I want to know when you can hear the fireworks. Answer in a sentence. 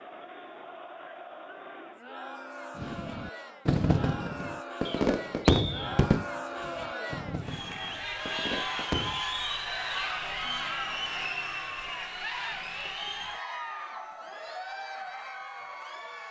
The fireworks can be heard from 2.8 to 9.2 s.